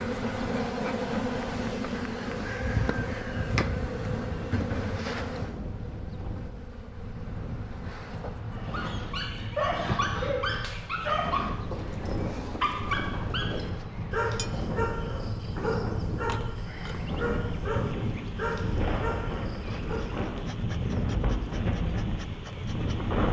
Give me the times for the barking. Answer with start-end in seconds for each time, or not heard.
8.6-20.1.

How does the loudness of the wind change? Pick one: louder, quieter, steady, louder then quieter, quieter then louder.
louder.